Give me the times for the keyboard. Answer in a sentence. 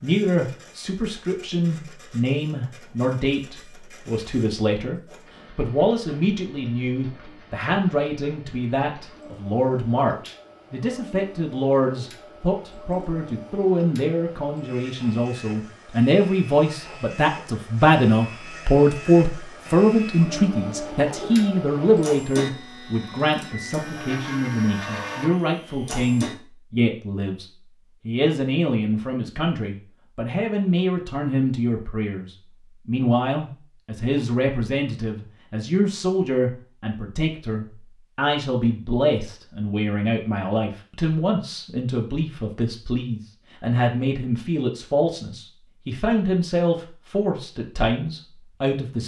You can't hear the keyboard here.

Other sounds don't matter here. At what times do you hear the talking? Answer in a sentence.
You can hear the talking from 0.0 to 27.4 s and from 28.1 to 49.0 s.